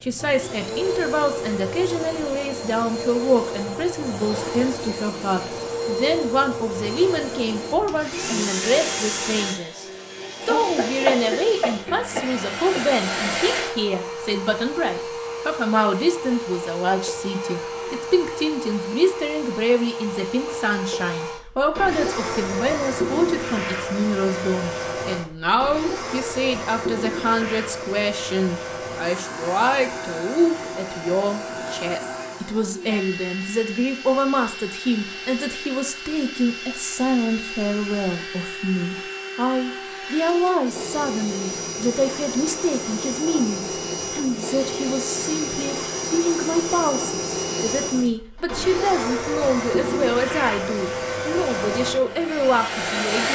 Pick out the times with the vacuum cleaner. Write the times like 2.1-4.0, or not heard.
0.0-53.3.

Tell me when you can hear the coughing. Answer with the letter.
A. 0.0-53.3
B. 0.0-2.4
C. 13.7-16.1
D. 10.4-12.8
D.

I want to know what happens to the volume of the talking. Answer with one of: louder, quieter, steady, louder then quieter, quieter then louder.
steady.